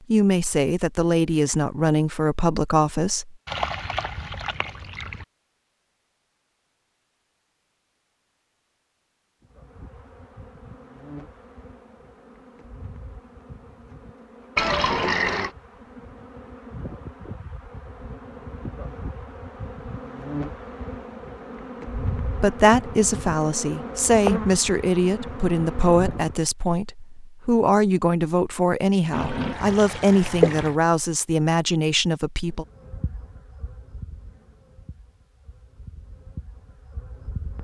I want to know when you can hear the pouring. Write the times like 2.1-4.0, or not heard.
3.5-5.2, 14.6-15.5, 29.1-30.8.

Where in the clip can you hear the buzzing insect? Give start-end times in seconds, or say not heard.
9.4-26.4, 32.5-37.6.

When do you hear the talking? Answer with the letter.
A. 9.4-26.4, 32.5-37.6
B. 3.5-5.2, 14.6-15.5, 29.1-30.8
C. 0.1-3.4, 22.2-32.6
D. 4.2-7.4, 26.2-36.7
C.